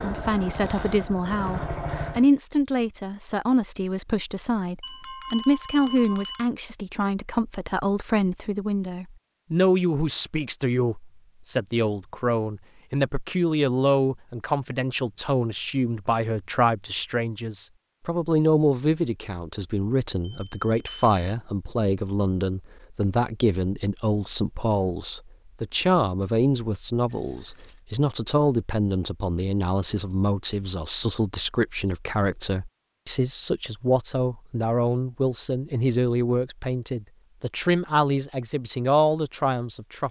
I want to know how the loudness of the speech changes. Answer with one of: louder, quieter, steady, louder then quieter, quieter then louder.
steady.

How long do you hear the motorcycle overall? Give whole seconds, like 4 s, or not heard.
2 s.